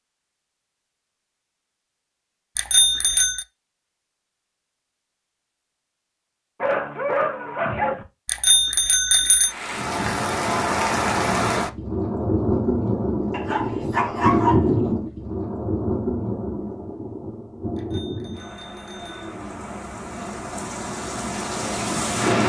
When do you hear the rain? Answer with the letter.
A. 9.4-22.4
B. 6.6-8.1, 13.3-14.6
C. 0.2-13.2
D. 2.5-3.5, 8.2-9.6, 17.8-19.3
A.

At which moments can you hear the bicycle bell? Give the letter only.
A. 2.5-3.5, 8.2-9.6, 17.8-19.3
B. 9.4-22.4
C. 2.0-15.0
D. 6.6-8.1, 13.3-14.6
A.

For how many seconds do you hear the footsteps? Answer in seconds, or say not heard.
not heard.